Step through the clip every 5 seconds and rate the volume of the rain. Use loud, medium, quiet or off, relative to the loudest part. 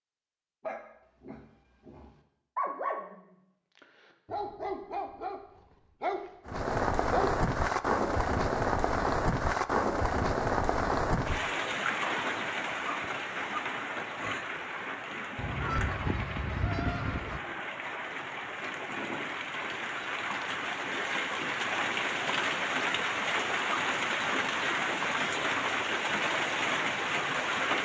off, loud, loud, medium, loud, loud.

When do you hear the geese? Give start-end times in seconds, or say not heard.
15.3-17.4.